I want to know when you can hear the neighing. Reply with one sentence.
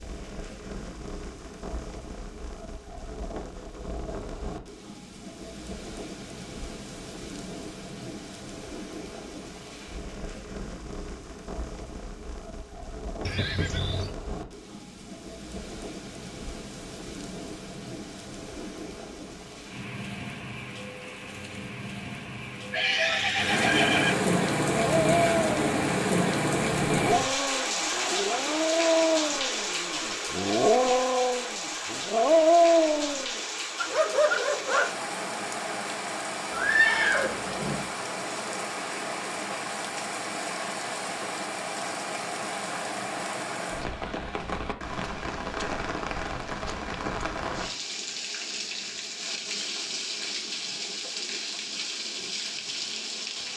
The neighing can be heard from 13.2 to 14.2 s, from 22.7 to 24.3 s and from 36.5 to 37.9 s.